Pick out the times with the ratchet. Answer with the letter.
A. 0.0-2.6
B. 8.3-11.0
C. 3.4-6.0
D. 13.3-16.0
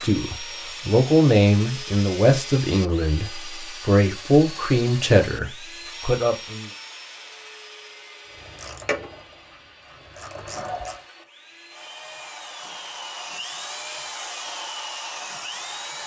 B.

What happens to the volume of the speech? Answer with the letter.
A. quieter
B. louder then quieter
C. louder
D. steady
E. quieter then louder
E.